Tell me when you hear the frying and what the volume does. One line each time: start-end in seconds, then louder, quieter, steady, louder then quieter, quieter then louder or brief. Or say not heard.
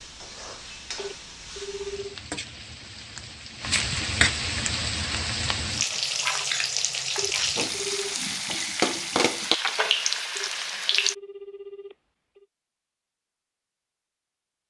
0.0-11.2 louder.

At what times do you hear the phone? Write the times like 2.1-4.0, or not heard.
0.9-2.1, 7.2-8.2, 10.3-12.4.